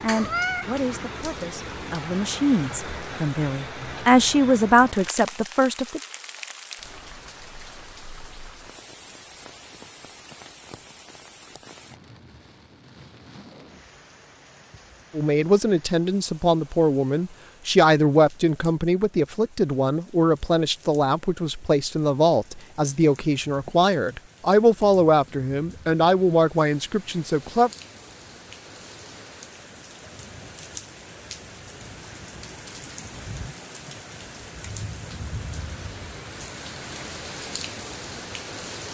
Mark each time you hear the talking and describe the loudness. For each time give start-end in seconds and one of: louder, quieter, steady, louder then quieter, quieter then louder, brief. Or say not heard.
0.0-6.0 louder
15.2-27.7 steady.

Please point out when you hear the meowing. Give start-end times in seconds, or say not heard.
0.1-0.7.